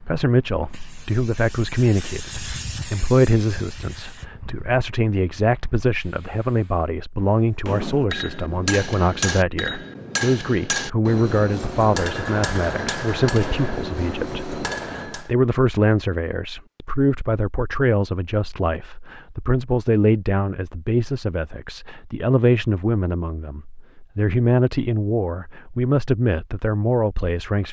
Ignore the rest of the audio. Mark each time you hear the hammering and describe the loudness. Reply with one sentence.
The hammering can be heard from 7.7 to 15.3 s, at a steady volume.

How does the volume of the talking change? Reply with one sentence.
The loudness of the talking stays about the same.